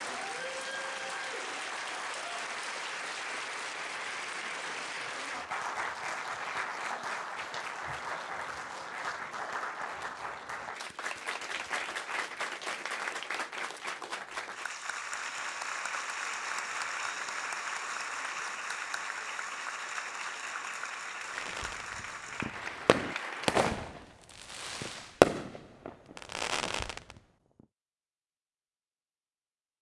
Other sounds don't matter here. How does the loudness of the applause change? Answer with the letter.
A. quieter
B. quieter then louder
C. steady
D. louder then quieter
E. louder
C.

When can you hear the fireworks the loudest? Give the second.
25 s.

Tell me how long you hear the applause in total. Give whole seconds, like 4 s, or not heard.
24 s.